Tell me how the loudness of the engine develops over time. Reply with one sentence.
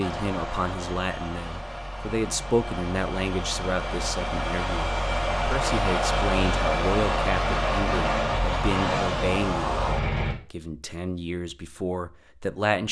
The loudness of the engine goes up.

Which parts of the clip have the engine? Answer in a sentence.
The engine can be heard from 0.0 to 10.3 s.